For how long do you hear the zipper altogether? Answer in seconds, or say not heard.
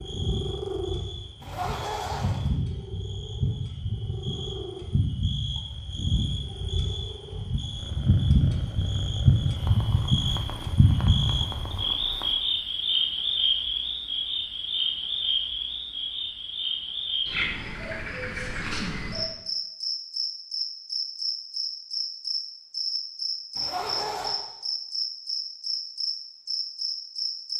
2 s.